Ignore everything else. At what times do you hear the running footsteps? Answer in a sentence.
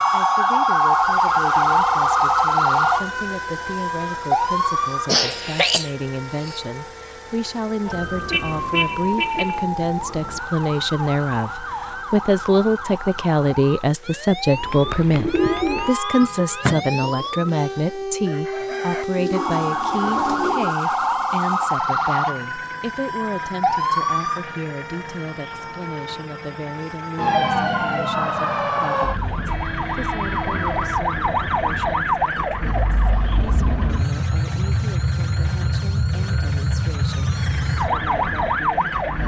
The running footsteps can't be heard in this clip.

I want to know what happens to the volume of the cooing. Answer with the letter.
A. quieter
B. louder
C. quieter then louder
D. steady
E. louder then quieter
C.